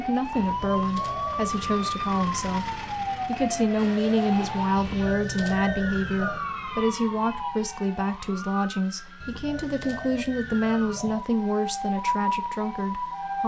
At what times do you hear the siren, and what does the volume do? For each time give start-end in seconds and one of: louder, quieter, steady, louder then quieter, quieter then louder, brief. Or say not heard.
0.0-13.4 quieter then louder.